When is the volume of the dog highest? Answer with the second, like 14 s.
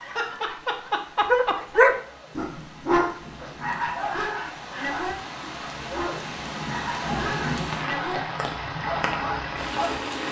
2 s.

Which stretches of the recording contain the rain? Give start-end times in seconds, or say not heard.
0.0-10.2.